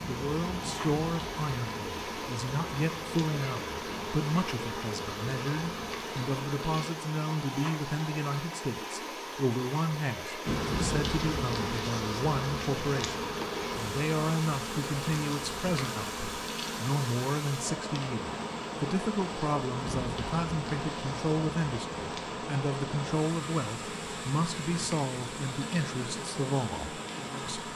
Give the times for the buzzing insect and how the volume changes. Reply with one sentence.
The buzzing insect can be heard from 0.0 to 7.0 s, at a steady volume; and from 10.4 to 27.7 s, getting quieter.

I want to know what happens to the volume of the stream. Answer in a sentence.
The loudness of the stream stays about the same.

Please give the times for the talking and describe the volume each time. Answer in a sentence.
You can hear the talking from 0.1 to 27.5 s, at a steady volume.